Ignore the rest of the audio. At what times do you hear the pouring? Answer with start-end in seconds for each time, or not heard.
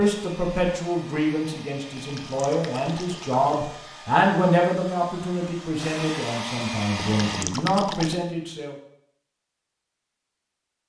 1.9-3.5, 7.0-8.2.